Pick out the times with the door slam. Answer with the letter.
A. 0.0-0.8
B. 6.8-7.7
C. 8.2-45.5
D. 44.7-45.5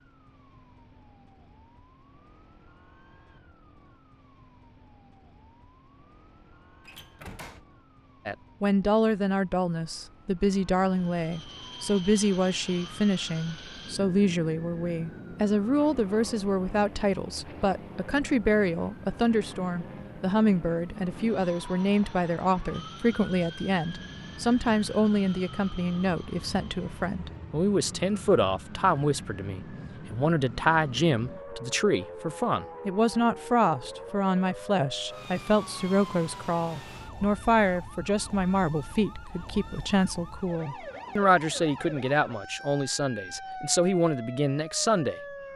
B.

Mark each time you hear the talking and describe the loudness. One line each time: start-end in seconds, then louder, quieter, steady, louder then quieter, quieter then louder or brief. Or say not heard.
8.2-45.5 steady.